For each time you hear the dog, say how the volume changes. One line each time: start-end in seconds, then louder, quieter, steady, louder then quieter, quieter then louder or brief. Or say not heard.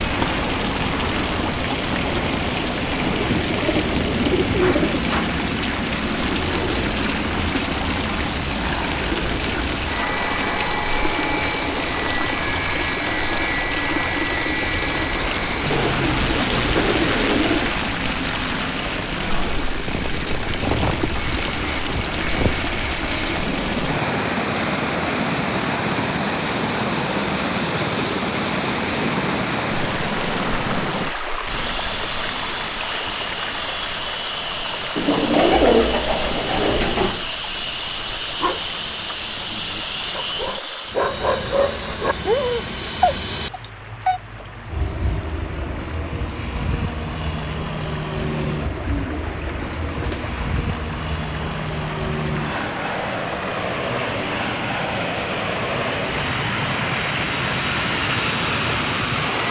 38.4-44.2 louder.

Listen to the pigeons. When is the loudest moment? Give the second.
36 s.